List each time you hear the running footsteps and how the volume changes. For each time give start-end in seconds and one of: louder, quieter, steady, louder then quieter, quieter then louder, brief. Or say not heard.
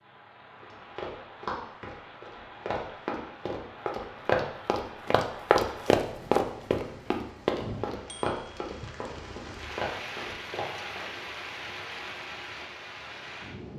0.6-11.1 louder then quieter.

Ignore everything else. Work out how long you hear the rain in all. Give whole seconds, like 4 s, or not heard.
14 s.